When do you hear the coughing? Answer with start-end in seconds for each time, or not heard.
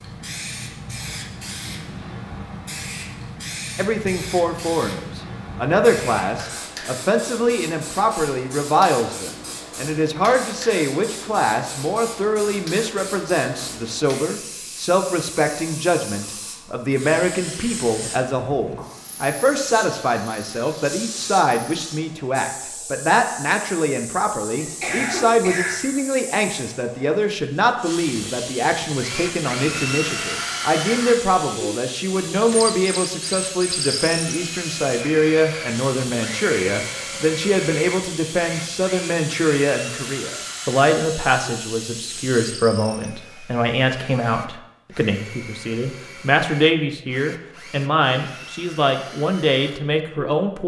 24.6-25.9.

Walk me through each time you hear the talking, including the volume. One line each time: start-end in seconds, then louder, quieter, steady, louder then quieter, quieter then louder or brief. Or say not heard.
3.8-50.6 steady.